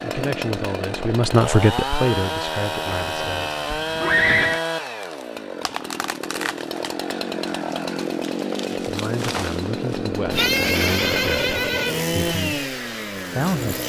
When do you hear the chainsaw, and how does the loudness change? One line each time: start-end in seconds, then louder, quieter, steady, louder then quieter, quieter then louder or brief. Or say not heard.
0.0-13.8 steady.